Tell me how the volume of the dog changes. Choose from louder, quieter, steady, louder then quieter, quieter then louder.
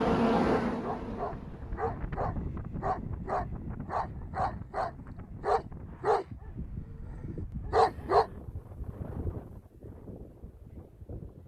louder.